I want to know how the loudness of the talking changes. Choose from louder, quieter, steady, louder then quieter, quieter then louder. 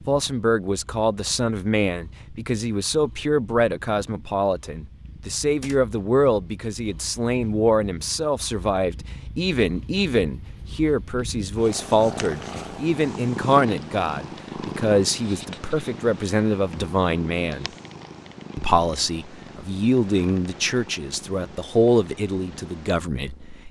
steady.